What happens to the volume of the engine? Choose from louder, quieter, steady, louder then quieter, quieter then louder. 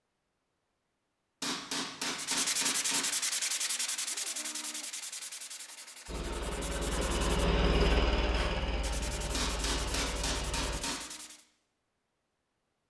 louder then quieter.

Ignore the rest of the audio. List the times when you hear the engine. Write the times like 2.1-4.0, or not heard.
6.0-10.8.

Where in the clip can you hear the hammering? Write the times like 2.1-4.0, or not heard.
1.4-3.1, 9.3-11.1.